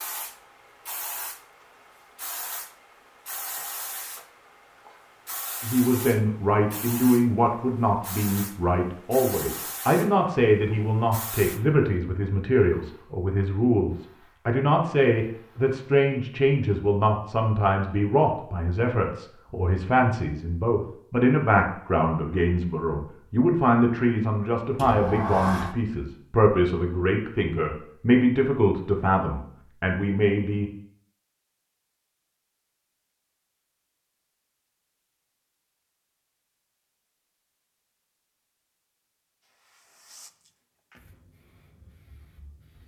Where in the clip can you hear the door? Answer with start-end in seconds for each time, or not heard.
24.8-25.8.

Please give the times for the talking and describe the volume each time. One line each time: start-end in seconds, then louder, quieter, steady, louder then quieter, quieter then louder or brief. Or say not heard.
5.6-30.7 steady.